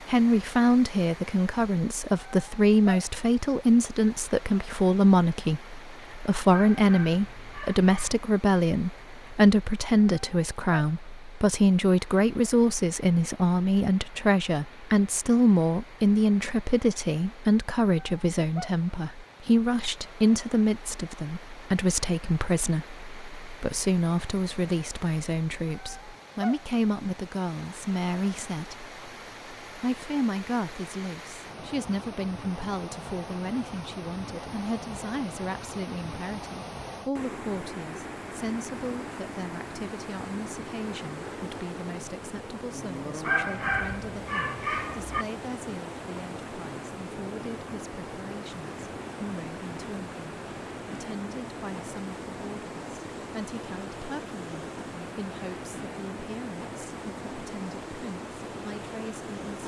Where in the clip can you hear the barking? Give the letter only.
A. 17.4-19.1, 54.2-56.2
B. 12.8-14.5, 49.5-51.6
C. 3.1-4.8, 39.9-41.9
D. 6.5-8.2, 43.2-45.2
D.